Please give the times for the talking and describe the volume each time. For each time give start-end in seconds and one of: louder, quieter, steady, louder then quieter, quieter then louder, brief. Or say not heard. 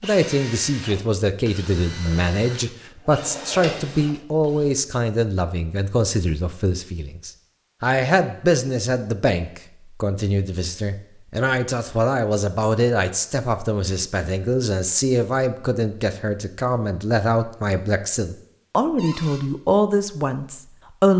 0.0-21.1 steady.